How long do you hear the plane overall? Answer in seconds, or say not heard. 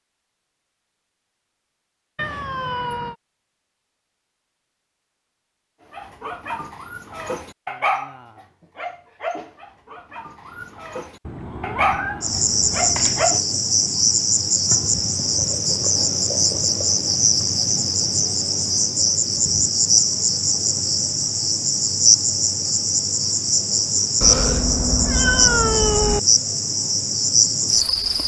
not heard.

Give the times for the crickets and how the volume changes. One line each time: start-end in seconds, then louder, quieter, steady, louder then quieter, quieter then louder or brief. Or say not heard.
12.2-28.2 steady.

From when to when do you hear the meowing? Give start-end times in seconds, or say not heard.
2.1-3.1, 11.2-13.2, 24.2-26.2.